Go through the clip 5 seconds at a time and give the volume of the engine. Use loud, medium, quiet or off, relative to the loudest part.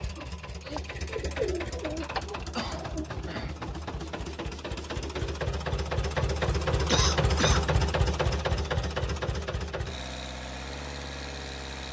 medium, loud, medium.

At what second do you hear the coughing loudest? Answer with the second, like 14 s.
7 s.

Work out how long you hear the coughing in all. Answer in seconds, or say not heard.
2 s.